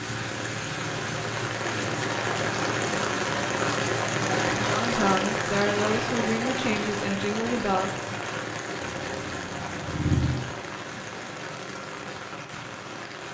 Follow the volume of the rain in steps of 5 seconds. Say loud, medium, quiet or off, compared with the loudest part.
loud, loud, medium.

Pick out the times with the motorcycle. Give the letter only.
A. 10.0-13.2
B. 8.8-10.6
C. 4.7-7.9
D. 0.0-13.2
B.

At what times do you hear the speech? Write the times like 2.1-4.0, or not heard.
4.7-7.9.